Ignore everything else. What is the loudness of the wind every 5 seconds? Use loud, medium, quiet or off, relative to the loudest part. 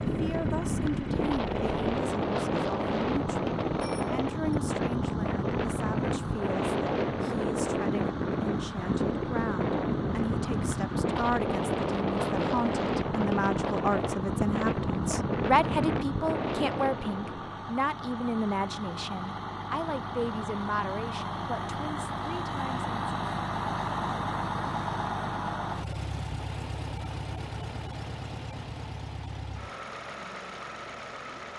loud, loud, loud, loud, off, off, off.